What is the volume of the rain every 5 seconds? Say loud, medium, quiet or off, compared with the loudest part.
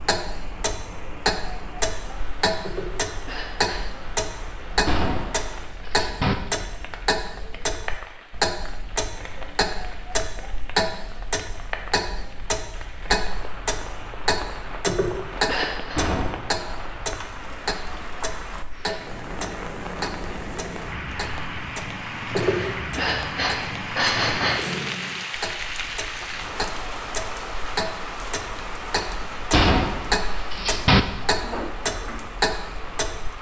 medium, medium, medium, medium, loud, loud, medium.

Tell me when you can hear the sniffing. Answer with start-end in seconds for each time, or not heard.
2.6-3.8, 14.8-16.0, 22.3-24.7.